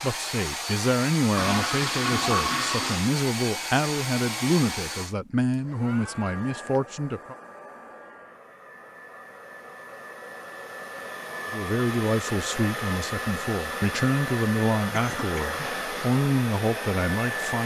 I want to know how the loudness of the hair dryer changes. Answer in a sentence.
The volume of the hair dryer goes down, then up.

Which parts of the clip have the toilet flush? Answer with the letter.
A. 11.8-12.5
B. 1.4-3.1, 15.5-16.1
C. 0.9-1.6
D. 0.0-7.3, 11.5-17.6
B.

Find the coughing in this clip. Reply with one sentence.
You can hear the coughing from 14.9 to 15.6 s.